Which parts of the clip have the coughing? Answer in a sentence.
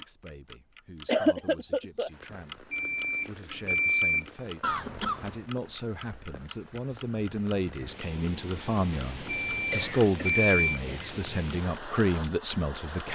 You can hear the coughing from 1.1 to 2.1 s, from 4.6 to 5.5 s and from 9.5 to 11.2 s.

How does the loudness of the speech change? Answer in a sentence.
The loudness of the speech goes up.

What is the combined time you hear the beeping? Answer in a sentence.
You can hear the beeping for 3 seconds altogether.